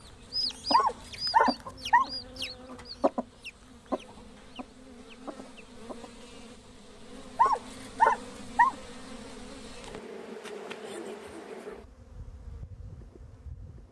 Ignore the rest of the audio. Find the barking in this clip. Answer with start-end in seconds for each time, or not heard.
0.7-2.1, 7.3-8.8.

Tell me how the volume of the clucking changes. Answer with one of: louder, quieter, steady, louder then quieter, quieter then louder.
quieter.